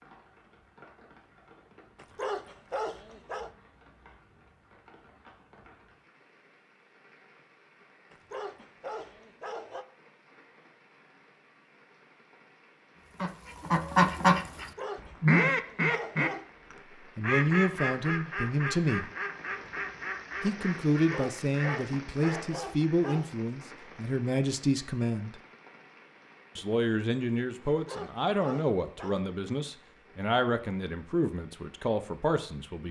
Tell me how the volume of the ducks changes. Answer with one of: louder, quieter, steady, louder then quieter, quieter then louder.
quieter.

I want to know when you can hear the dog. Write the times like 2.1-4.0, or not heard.
1.9-3.5, 8.1-9.8, 14.6-16.5, 20.9-23.4, 27.7-29.2.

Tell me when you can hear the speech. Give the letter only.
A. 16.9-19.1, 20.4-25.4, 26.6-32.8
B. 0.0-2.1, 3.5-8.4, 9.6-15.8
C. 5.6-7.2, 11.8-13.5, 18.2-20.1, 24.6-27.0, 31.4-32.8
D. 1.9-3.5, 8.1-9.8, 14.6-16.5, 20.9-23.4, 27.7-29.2
A.